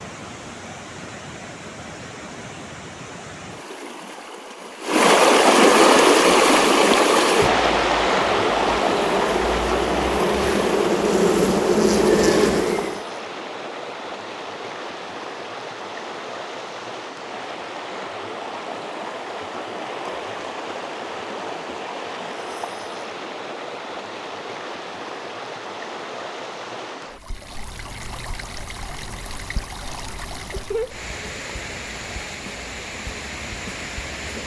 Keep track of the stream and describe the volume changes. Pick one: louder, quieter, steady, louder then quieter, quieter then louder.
quieter.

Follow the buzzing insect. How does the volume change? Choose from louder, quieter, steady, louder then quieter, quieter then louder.
louder.